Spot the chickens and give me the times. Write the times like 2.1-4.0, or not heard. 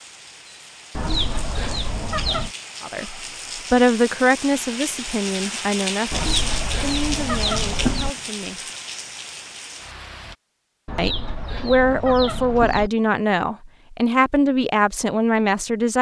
0.9-2.5, 6.1-8.1, 10.8-12.9.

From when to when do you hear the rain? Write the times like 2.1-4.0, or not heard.
0.0-10.3.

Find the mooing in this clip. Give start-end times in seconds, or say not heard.
not heard.